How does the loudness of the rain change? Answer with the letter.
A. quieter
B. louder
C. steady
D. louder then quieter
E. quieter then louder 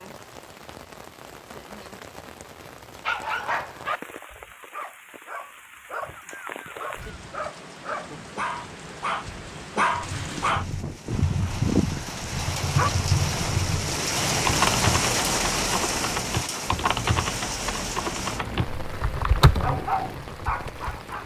D.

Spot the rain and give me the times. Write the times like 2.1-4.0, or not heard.
0.0-21.2.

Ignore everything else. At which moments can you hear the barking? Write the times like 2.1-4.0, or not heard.
3.0-12.9, 19.6-21.2.